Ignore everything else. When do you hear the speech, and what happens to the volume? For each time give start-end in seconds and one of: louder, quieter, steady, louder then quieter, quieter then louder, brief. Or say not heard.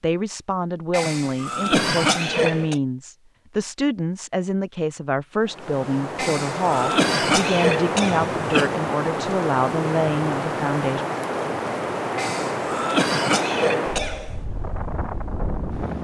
0.0-11.1 steady.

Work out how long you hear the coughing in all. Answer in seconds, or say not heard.
7 s.